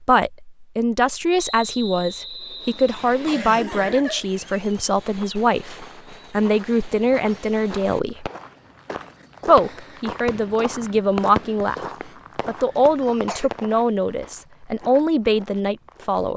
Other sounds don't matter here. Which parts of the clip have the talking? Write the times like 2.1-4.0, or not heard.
0.0-8.2, 9.4-11.8, 12.4-16.3.